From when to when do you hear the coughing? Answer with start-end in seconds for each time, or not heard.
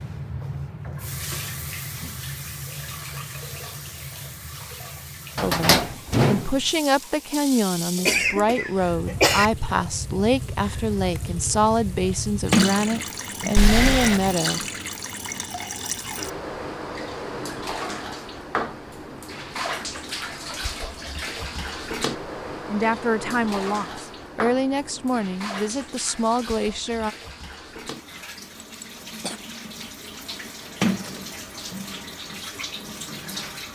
8.1-9.5, 13.6-14.3, 28.6-29.4.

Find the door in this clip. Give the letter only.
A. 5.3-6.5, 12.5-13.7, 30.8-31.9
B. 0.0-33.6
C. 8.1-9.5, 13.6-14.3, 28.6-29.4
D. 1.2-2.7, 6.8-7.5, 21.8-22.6
A.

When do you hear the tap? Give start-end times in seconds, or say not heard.
0.0-33.6.